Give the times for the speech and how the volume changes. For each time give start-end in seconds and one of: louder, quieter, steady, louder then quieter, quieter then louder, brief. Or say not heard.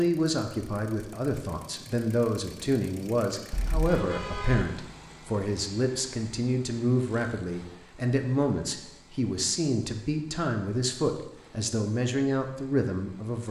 0.0-13.4 steady.